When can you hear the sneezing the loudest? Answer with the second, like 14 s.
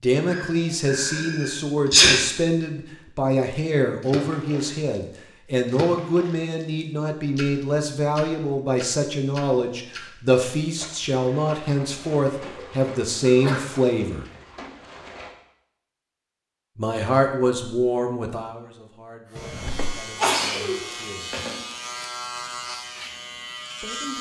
2 s.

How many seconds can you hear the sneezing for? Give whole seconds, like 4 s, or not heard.
4 s.